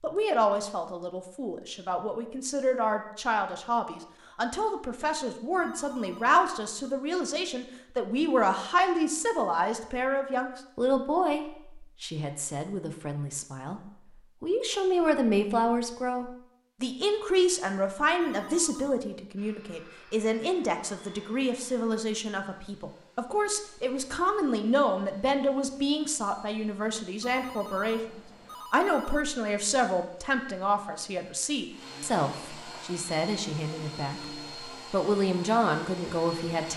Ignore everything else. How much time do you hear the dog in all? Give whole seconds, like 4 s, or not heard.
not heard.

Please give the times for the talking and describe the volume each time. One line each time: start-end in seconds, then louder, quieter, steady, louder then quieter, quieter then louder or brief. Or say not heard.
0.0-36.7 steady.